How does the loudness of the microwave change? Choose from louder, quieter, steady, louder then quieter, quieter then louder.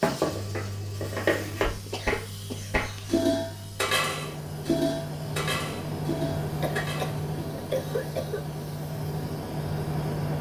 louder.